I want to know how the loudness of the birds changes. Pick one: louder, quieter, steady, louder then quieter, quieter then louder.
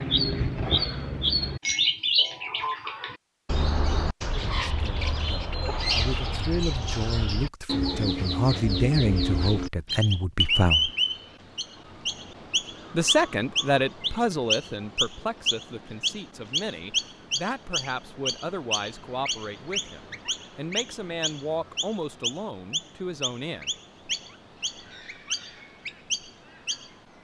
quieter.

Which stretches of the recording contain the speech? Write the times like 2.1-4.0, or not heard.
4.4-10.9, 12.9-23.7.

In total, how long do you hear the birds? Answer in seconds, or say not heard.
27 s.